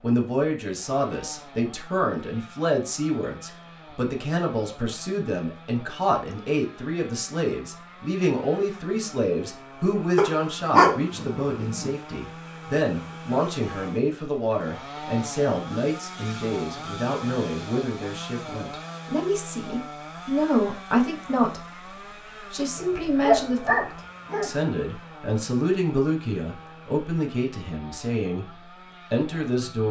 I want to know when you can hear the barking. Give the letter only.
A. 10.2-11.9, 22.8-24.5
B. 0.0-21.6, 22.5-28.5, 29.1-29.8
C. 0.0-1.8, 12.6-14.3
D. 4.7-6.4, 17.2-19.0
A.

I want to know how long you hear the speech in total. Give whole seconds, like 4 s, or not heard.
28 s.